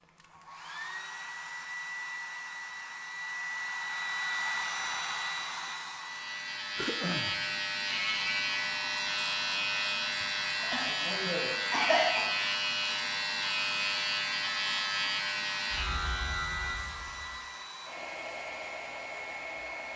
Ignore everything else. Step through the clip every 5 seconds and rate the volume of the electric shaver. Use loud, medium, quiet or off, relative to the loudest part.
off, loud, loud, loud.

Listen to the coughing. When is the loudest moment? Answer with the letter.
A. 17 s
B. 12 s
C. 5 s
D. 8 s
B.